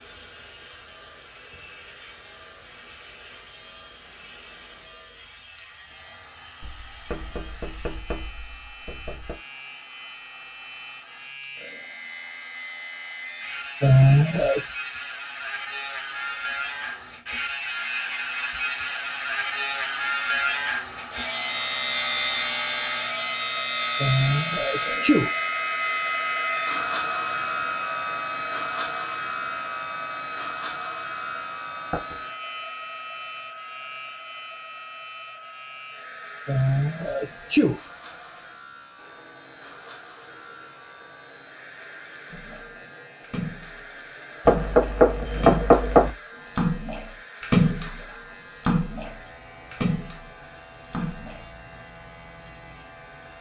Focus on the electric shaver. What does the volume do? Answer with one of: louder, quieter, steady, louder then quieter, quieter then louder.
louder then quieter.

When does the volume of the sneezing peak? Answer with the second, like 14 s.
14 s.